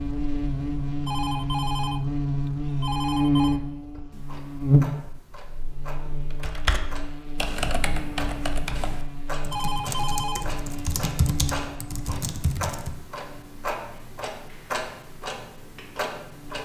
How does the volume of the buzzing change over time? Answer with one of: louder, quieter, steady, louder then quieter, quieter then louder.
quieter.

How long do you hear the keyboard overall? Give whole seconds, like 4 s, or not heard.
7 s.